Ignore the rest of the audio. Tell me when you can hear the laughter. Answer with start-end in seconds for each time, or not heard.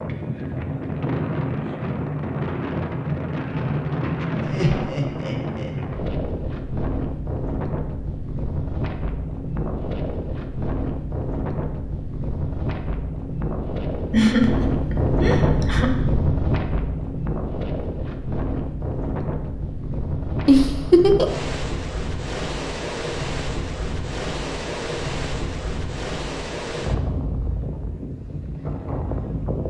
4.4-5.7, 14.1-15.9, 20.4-21.4.